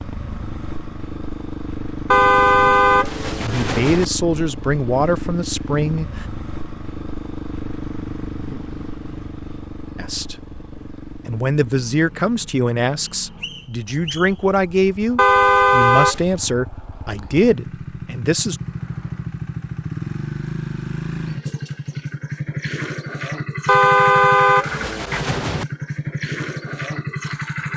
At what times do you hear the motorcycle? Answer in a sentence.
You can hear the motorcycle from 0.0 to 27.7 s.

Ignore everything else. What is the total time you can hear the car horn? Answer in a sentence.
The car horn can be heard for 5 seconds in total.